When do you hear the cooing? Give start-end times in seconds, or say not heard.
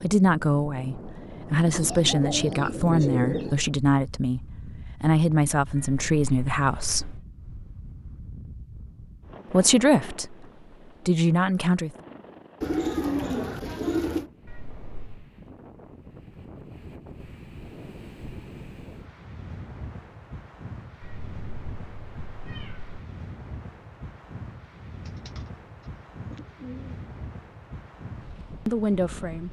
1.6-3.6, 12.6-14.3, 25.1-27.0.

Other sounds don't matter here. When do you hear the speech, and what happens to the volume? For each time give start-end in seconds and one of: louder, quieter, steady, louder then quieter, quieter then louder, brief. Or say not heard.
0.0-7.2 steady
9.5-10.4 brief
11.1-11.9 brief
28.6-29.4 brief.